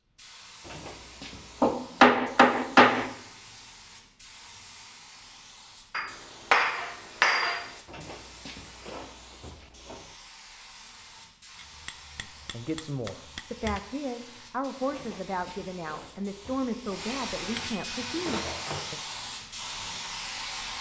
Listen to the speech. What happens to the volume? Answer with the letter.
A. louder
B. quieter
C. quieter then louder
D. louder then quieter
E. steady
E.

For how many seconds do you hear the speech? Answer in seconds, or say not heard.
7 s.